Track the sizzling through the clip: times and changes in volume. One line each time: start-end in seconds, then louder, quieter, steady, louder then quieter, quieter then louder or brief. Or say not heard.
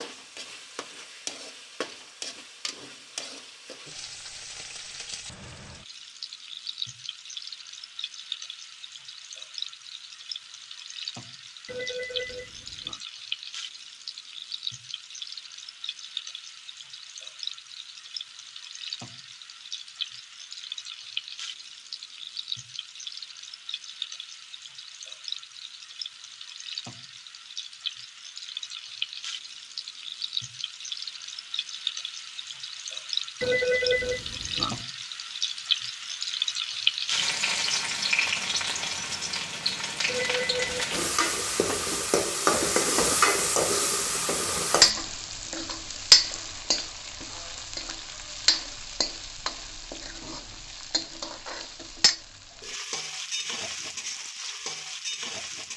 0.0-55.7 louder.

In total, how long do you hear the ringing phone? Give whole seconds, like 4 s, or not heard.
4 s.